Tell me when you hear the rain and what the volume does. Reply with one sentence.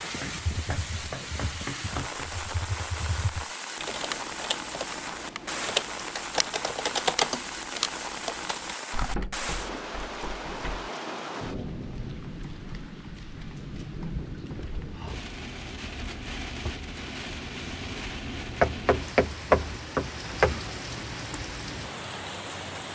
You can hear the rain from 0.0 to 22.8 s, at a steady volume.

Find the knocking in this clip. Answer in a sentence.
The knocking can be heard from 0.2 to 2.3 s, from 9.1 to 10.9 s and from 18.6 to 20.6 s.